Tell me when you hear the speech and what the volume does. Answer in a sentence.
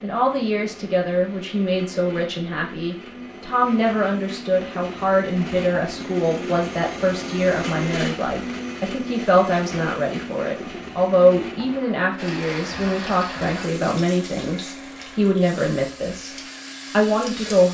You can hear the speech from 0.0 to 17.7 s, at a steady volume.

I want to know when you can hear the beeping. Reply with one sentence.
You can't hear the beeping here.